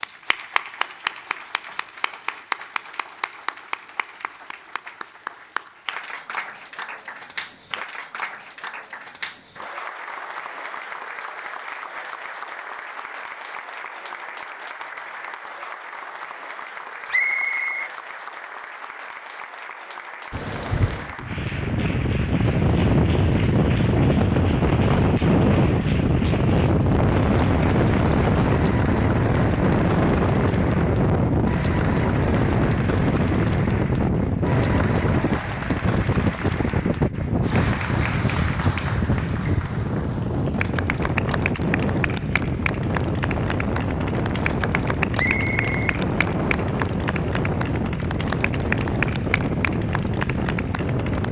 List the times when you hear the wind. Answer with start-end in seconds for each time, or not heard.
20.3-51.2.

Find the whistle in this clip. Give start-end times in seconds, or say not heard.
17.1-17.9, 45.1-46.8.